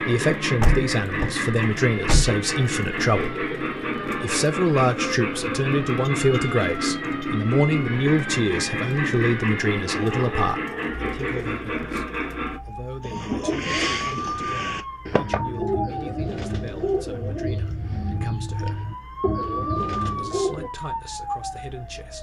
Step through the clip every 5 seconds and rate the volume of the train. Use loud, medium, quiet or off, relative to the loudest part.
loud, loud, loud, off, off.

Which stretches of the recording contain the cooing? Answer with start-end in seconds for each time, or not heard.
13.0-20.7.